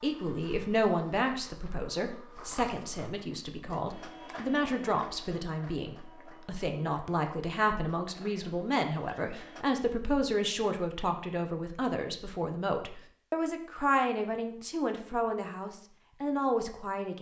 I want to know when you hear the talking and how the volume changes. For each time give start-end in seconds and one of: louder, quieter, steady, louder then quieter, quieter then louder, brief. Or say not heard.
0.0-17.1 steady.